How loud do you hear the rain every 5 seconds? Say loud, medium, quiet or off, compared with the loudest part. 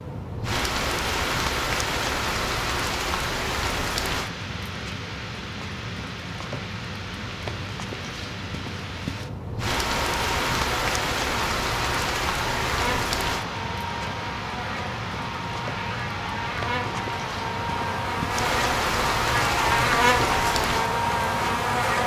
loud, medium, loud, loud, loud.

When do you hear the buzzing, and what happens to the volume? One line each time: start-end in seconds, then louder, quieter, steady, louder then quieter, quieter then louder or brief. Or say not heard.
9.7-22.0 louder.